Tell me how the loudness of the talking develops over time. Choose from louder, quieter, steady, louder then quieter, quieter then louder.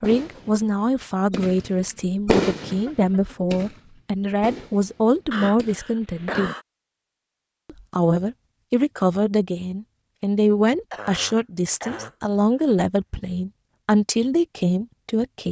steady.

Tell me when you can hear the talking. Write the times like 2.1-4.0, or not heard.
0.0-6.5, 7.7-15.4.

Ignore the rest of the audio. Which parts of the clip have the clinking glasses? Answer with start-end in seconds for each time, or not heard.
not heard.